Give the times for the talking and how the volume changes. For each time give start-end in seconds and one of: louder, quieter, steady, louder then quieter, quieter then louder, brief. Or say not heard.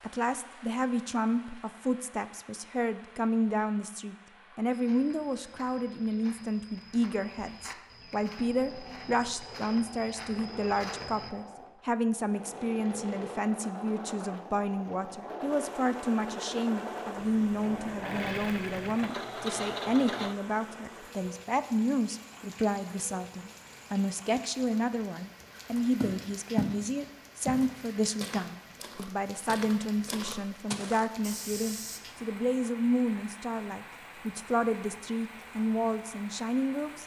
0.0-37.0 steady.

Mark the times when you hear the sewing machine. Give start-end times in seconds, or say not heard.
7.8-20.4.